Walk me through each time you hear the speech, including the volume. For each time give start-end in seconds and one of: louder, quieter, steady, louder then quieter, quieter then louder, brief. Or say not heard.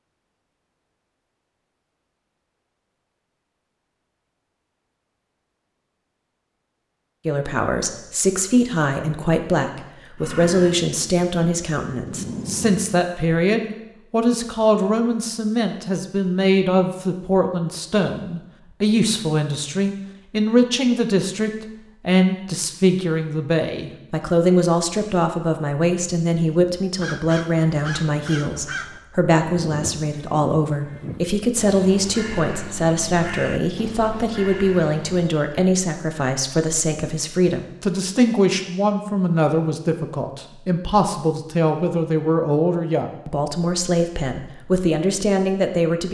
7.2-46.0 steady.